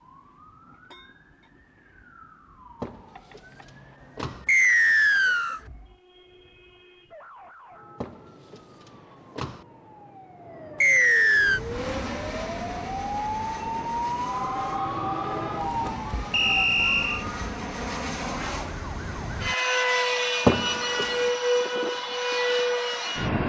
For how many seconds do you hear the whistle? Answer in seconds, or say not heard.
3 s.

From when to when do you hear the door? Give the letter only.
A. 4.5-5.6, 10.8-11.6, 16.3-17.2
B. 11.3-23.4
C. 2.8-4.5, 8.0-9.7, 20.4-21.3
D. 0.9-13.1
C.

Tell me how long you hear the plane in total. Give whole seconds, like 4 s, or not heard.
12 s.